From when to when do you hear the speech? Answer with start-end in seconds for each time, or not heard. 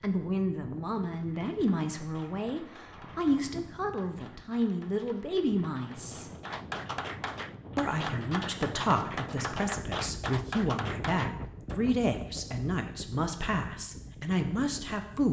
0.0-6.3, 7.8-15.2.